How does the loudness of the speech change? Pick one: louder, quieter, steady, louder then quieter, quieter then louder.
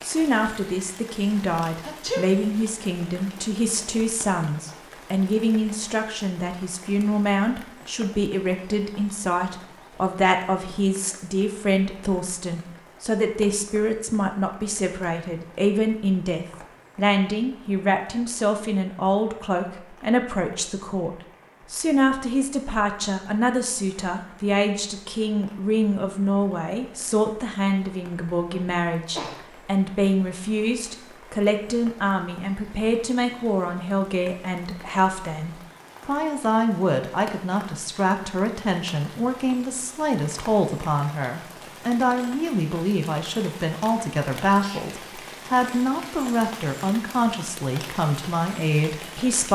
steady.